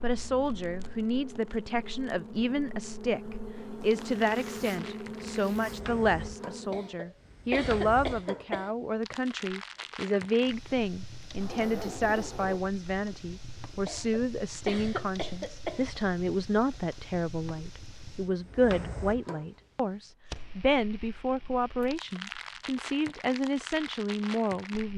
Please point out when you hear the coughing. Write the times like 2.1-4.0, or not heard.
6.7-8.7, 13.8-15.8.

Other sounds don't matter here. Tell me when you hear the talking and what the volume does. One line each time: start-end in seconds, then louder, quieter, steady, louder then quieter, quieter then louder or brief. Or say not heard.
0.0-24.9 steady.